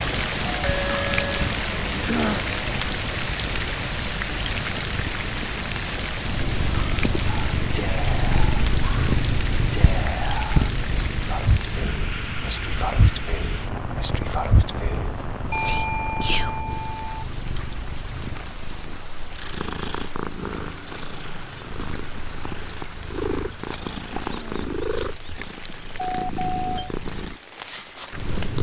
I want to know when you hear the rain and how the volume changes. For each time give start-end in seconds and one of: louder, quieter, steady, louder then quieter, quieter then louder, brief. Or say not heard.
0.0-28.5 quieter.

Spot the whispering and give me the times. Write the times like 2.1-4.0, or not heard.
7.2-16.5.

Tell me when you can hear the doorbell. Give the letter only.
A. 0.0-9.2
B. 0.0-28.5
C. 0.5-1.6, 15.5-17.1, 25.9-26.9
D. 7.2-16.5
C.